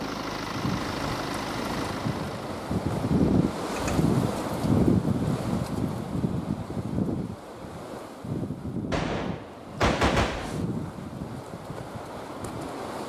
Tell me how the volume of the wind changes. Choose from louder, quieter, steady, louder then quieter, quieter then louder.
louder then quieter.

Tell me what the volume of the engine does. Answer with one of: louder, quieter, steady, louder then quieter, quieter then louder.
quieter.